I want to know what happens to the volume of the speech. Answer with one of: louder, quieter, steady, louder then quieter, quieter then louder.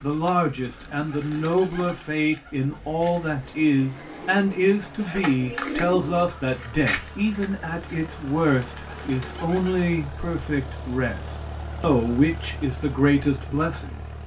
steady.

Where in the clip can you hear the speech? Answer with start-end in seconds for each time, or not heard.
0.0-14.2.